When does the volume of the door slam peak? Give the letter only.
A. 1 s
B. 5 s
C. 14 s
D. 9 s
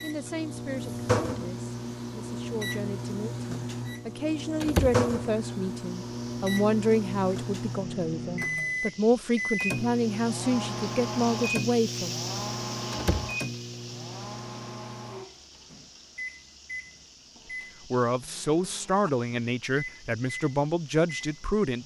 B.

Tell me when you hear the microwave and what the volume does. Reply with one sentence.
You can hear the microwave from 0.0 to 21.8 s, getting quieter.